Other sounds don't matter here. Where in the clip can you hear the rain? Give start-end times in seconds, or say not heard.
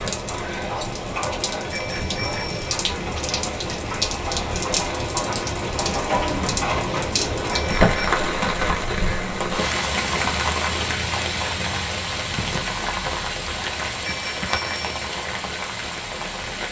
0.0-16.6.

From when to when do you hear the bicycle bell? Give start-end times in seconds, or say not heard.
1.7-2.8, 7.5-8.1, 14.0-14.9.